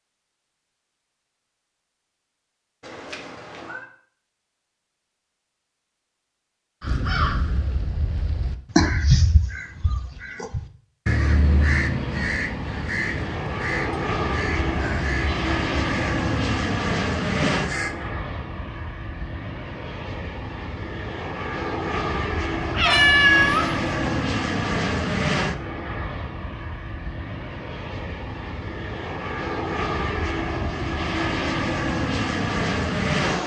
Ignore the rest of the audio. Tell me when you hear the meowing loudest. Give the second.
23 s.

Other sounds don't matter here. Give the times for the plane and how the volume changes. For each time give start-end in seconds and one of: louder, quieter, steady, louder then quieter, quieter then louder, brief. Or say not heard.
11.3-33.4 steady.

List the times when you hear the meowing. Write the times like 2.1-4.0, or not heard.
2.8-3.9, 22.6-24.1.